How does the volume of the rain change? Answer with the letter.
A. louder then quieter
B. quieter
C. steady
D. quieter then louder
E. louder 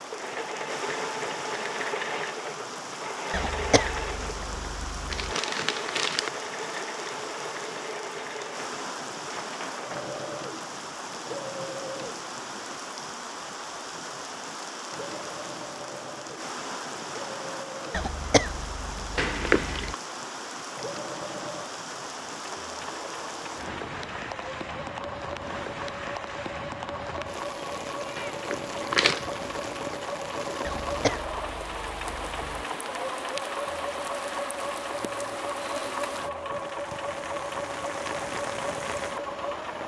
C.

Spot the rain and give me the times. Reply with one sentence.
The rain can be heard from 0.0 to 39.8 s.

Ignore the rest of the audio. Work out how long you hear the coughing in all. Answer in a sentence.
You can hear the coughing for 6 seconds altogether.